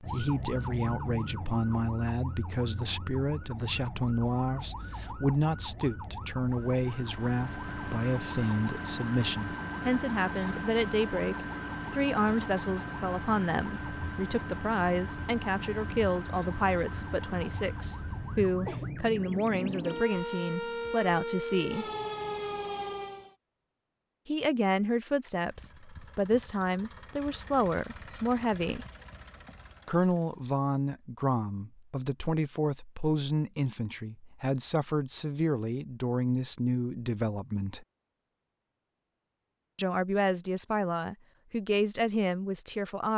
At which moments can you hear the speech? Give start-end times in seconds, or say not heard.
0.0-21.9, 24.2-28.9, 29.9-37.9, 39.8-43.1.